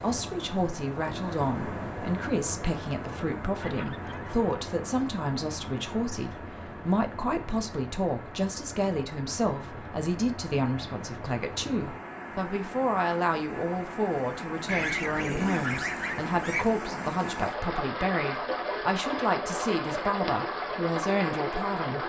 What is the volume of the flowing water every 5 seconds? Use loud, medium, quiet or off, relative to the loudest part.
medium, medium, medium, loud, loud.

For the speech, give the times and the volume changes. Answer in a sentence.
You can hear the speech from 0.0 to 22.0 s, at a steady volume.